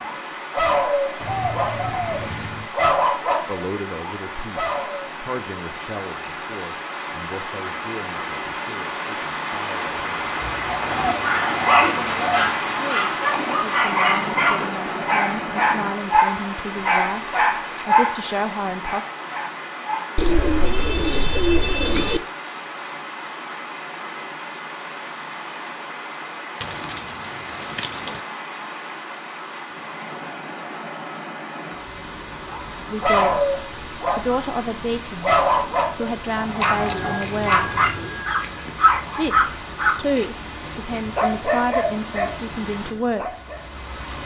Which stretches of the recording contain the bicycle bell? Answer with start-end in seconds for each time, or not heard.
6.2-8.6, 17.8-18.4, 36.6-38.7.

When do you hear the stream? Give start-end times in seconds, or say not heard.
0.0-44.2.